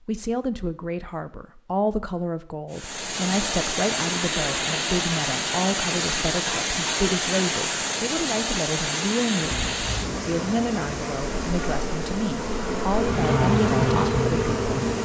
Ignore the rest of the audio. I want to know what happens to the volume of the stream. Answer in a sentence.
The loudness of the stream goes down.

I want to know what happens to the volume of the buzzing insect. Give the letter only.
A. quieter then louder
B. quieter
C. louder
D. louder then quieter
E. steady
C.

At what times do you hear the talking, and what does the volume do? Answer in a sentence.
The talking can be heard from 0.0 to 15.0 s, at a steady volume.